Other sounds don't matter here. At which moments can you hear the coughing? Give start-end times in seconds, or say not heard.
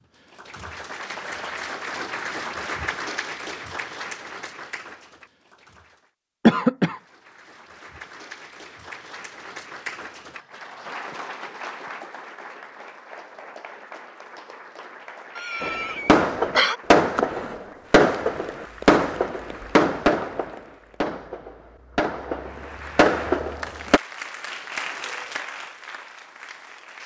6.5-7.0, 15.3-16.8.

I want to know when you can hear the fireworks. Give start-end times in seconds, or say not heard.
15.6-24.0.